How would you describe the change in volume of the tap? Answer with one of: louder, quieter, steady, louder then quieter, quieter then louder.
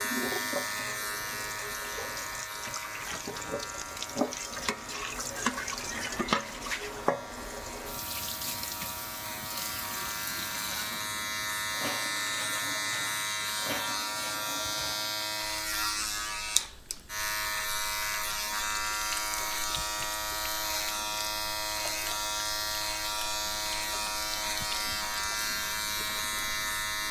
quieter.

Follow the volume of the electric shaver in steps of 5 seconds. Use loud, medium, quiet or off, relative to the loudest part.
medium, medium, loud, loud, loud, loud.